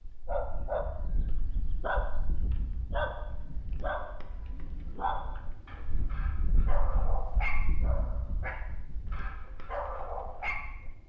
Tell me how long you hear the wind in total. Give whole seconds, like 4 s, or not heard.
11 s.